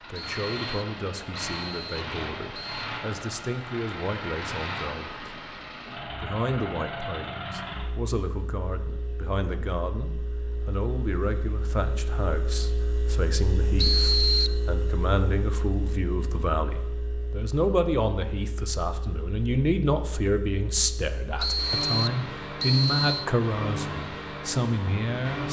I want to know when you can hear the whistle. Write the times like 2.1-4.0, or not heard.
0.1-2.9, 13.8-14.6, 21.4-23.2.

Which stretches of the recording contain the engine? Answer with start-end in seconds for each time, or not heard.
0.0-25.4.